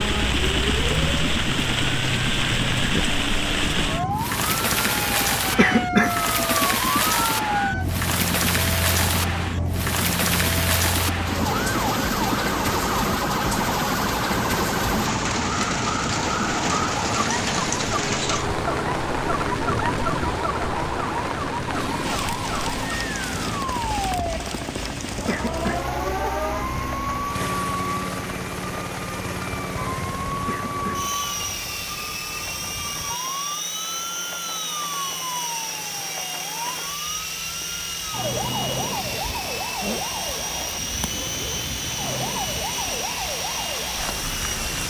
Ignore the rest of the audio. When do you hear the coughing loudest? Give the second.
6 s.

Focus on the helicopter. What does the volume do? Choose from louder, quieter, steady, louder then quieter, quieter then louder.
steady.